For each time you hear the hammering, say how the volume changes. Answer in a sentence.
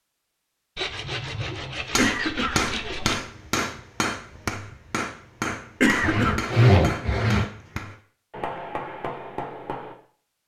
You can hear the hammering from 1.9 to 9.9 s, getting quieter.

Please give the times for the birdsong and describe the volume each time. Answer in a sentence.
The birdsong can't be heard in this clip.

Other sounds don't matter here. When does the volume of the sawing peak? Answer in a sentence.
The volume of the sawing peaks at 7 seconds.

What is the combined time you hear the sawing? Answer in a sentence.
The sawing can be heard for 4 seconds in total.